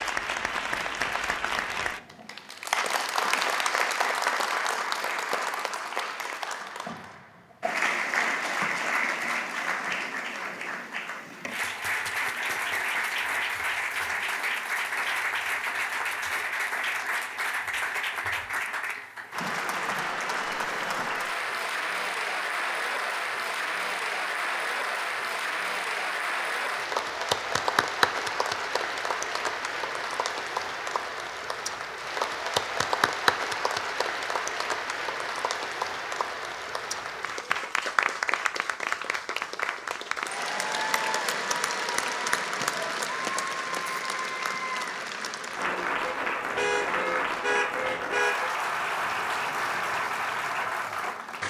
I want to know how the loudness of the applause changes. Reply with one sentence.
The loudness of the applause stays about the same.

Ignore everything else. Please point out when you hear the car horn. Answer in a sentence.
You can hear the car horn from 46.0 to 48.5 s.